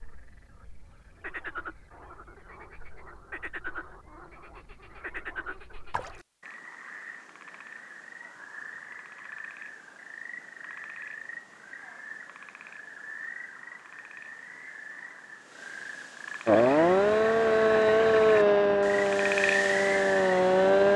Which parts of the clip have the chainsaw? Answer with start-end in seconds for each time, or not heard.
16.4-20.9.